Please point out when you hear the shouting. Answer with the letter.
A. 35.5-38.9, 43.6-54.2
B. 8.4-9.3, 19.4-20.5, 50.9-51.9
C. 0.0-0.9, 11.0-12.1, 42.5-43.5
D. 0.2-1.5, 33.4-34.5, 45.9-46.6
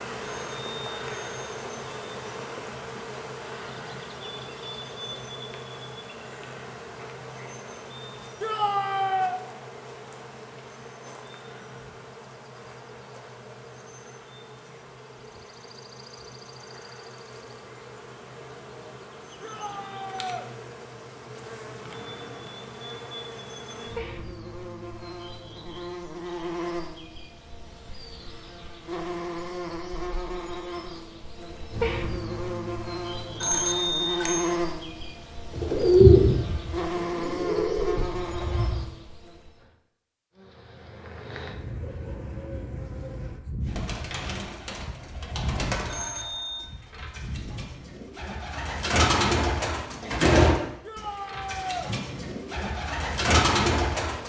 B.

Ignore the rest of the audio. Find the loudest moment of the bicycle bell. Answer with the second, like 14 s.
34 s.